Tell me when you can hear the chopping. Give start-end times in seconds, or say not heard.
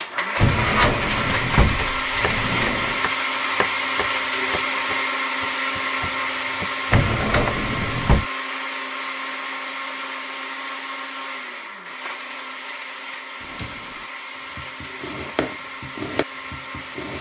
1.8-7.5, 14.6-17.1.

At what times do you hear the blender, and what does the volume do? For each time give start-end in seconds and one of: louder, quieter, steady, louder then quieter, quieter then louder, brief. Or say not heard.
0.0-17.1 quieter.